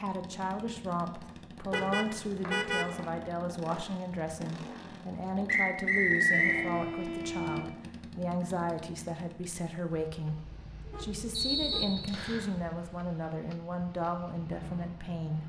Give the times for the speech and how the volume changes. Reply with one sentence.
You can hear the speech from 0.0 to 15.4 s, at a steady volume.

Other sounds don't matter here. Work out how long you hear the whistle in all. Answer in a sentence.
You can hear the whistle for 4 seconds altogether.